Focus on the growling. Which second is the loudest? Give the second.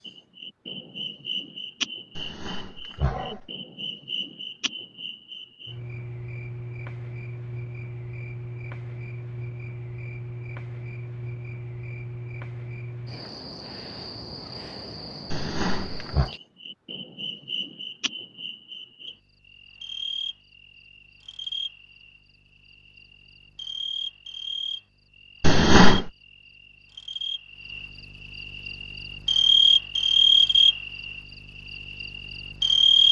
26 s.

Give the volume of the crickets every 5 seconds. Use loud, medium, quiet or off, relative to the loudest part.
quiet, quiet, quiet, quiet, quiet, medium, loud.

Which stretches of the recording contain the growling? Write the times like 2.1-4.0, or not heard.
2.1-3.5, 15.3-16.3, 25.4-26.1.